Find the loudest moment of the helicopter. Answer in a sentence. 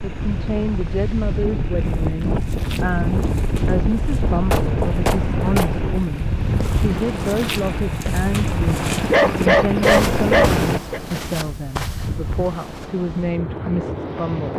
The loudest moment of the helicopter is at 10 seconds.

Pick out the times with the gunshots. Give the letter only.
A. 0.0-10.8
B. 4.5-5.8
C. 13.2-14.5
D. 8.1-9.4
B.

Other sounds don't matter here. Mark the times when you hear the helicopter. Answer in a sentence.
You can hear the helicopter from 0.0 to 10.8 s.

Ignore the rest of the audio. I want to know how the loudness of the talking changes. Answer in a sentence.
The loudness of the talking stays about the same.